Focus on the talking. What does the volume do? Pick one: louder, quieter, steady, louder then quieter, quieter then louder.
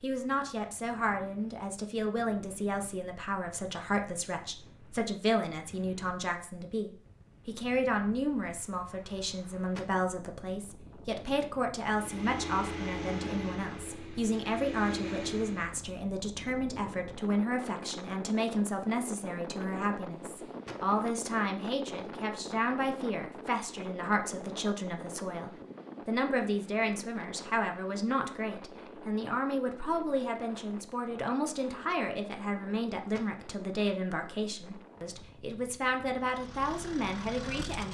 steady.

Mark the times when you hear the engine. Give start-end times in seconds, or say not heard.
11.9-15.8, 36.1-37.8.